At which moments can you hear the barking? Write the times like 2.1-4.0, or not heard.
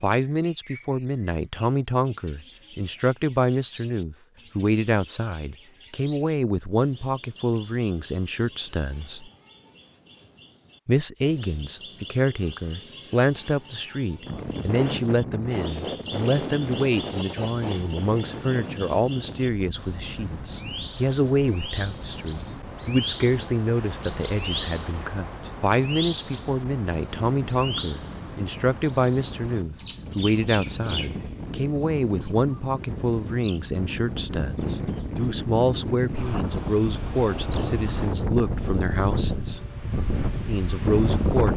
not heard.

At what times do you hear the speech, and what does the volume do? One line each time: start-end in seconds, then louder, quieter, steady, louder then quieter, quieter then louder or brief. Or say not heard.
0.0-9.3 steady
10.8-39.6 steady
40.5-41.5 brief.